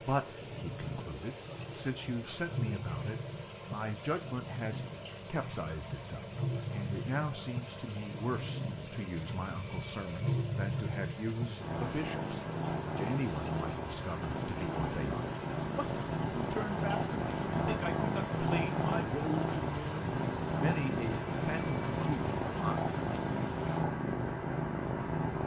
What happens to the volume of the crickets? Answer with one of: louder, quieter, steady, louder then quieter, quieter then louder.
steady.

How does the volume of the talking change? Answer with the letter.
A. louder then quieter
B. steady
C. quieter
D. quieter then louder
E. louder
B.